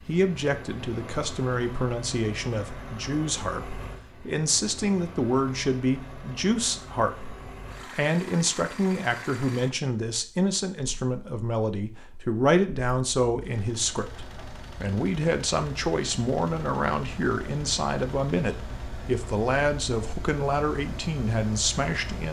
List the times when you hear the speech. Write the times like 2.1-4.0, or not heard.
0.1-22.2.